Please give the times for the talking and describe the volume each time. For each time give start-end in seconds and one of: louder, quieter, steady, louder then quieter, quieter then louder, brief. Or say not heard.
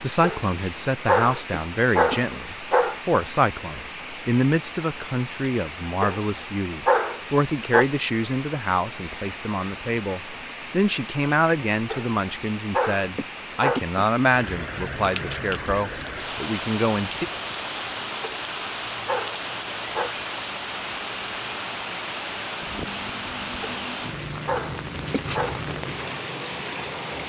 0.0-17.2 steady.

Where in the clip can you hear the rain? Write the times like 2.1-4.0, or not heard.
0.0-27.2.